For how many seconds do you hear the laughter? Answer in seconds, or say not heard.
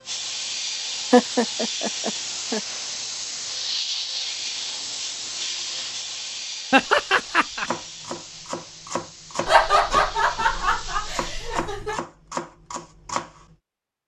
5 s.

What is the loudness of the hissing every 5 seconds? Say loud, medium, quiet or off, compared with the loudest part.
loud, medium, medium.